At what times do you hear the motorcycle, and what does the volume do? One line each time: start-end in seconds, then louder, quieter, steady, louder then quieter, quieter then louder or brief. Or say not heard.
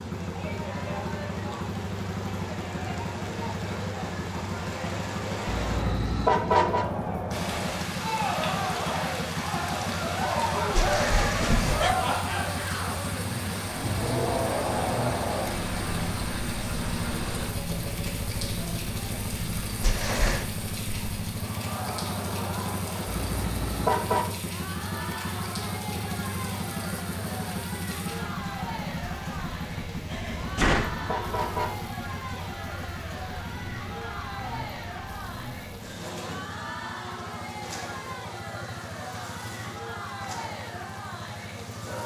0.0-42.0 quieter.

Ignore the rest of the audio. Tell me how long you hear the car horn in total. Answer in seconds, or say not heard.
4 s.